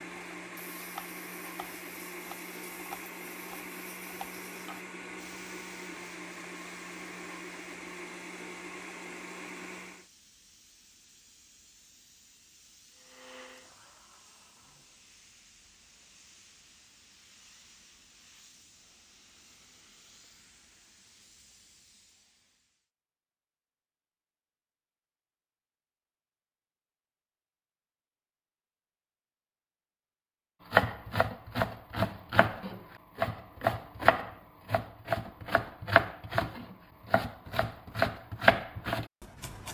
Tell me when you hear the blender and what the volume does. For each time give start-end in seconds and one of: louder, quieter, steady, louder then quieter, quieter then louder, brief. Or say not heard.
0.0-10.1 steady
12.9-15.1 brief.